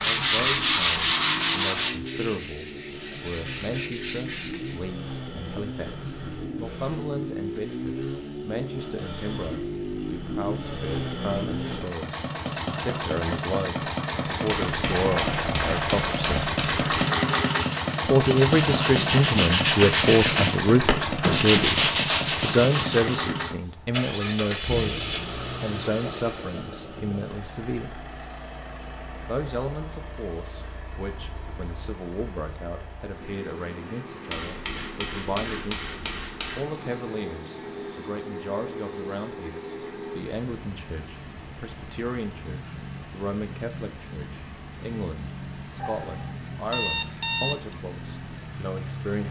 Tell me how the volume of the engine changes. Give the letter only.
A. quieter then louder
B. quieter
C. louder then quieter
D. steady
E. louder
C.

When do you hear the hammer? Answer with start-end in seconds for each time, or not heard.
14.4-16.9, 34.3-36.8.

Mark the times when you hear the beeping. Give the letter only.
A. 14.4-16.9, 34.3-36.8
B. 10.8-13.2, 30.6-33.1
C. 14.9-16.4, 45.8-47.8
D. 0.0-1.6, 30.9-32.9
C.